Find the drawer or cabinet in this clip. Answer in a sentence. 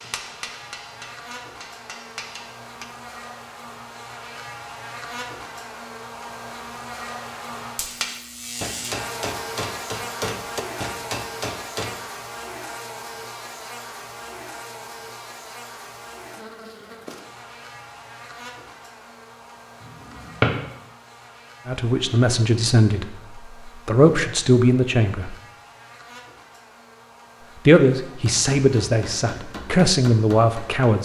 The drawer or cabinet can be heard from 19.8 to 20.6 s.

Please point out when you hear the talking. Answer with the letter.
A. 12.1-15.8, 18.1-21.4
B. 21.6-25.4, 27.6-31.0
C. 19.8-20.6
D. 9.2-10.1
B.